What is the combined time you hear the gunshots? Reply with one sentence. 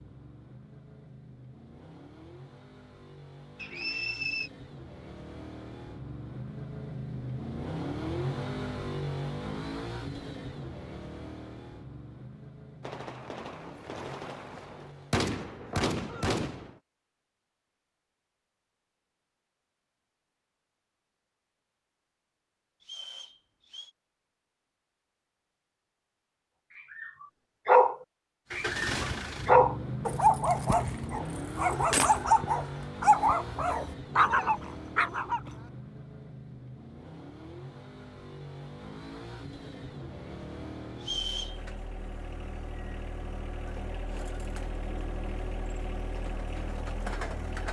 You can hear the gunshots for 4 seconds altogether.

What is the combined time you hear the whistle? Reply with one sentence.
You can hear the whistle for 3 seconds altogether.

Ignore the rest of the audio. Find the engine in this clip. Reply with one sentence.
You can hear the engine from 0.0 to 15.3 s and from 28.5 to 47.6 s.